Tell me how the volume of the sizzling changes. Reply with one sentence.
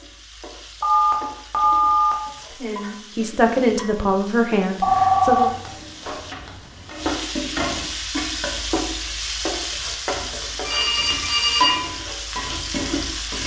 The volume of the sizzling goes up.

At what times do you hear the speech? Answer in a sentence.
You can hear the speech from 2.5 to 5.5 s.